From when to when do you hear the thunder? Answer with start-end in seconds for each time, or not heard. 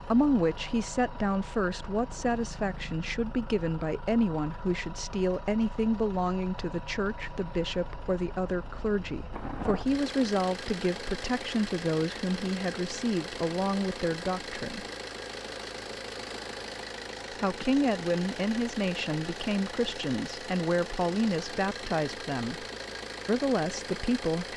9.3-9.8.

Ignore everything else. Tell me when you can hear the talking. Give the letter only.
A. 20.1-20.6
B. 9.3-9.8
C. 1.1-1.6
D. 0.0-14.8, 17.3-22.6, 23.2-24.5
D.